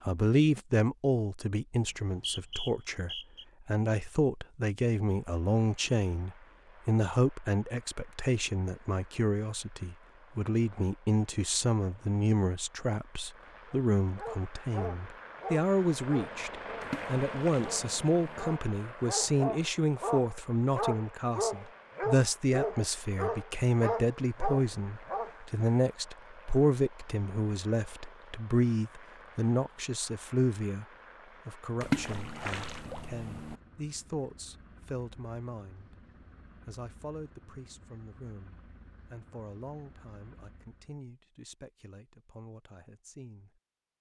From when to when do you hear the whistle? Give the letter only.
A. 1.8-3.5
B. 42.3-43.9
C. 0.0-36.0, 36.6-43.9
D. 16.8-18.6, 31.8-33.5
A.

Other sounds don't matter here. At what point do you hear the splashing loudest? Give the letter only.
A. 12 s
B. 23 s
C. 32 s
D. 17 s
C.